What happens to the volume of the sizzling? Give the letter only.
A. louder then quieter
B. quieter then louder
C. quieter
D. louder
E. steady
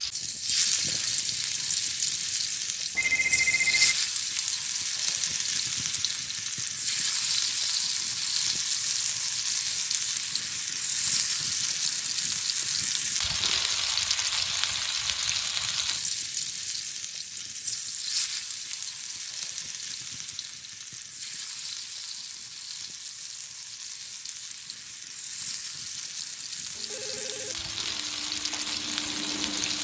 C.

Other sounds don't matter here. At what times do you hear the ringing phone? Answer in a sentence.
The ringing phone can be heard from 3.0 to 4.0 s and from 26.8 to 28.0 s.